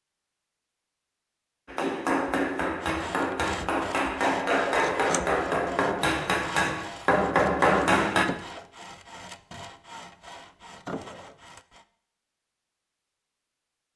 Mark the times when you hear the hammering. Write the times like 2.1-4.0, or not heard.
1.6-8.2.